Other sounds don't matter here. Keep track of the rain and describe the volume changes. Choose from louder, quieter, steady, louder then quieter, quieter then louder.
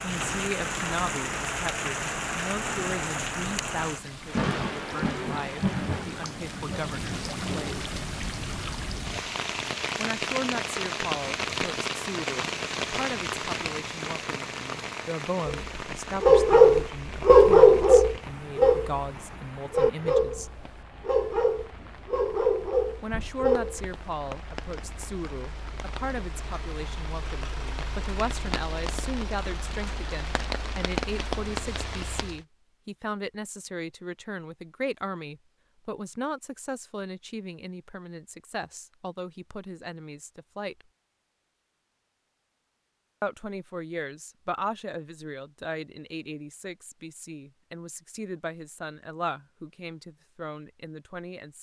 quieter then louder.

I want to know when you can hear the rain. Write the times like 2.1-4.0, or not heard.
0.0-32.5.